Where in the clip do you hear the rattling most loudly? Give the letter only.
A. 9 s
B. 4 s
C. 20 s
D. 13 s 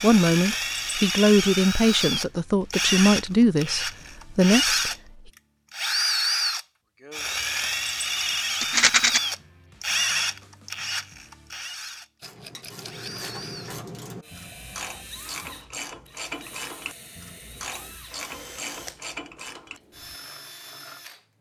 A.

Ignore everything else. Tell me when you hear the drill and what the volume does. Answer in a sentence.
You can hear the drill from 0.0 to 21.3 s, getting quieter.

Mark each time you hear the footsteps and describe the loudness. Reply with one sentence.
The footsteps can't be heard in this clip.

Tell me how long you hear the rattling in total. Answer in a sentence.
The rattling can be heard for 2 seconds in total.